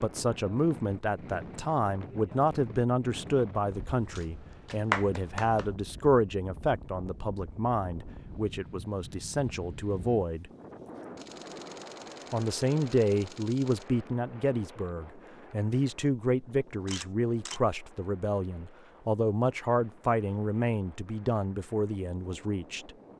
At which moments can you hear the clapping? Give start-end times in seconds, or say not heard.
4.7-5.7.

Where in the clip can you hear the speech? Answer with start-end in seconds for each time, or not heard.
0.0-10.5, 12.3-22.9.